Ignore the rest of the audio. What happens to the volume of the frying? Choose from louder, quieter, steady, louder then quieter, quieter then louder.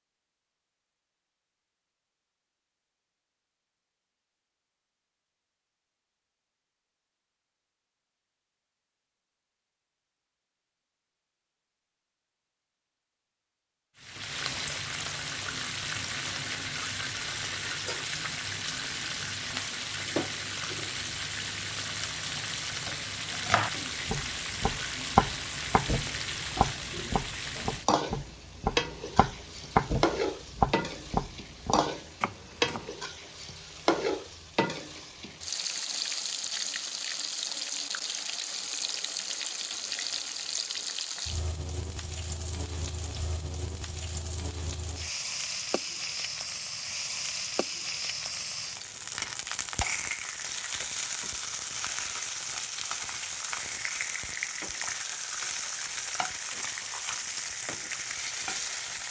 steady.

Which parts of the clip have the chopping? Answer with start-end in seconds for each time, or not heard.
22.4-32.9.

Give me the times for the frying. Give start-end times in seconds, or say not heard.
14.0-59.0.